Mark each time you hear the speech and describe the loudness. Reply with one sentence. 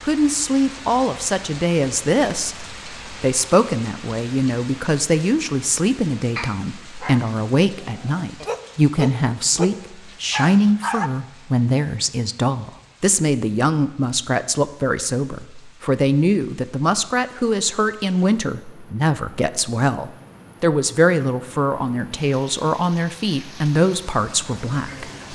The speech can be heard from 0.0 to 25.3 s, at a steady volume.